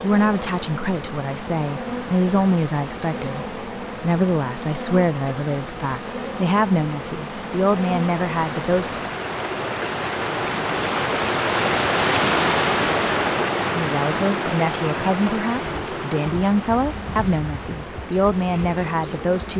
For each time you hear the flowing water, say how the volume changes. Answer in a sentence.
You can hear the flowing water from 0.0 to 19.5 s, getting louder then quieter.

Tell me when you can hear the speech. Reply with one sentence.
The speech can be heard from 0.0 to 9.1 s and from 13.7 to 19.5 s.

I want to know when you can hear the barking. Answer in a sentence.
The barking can't be heard in this clip.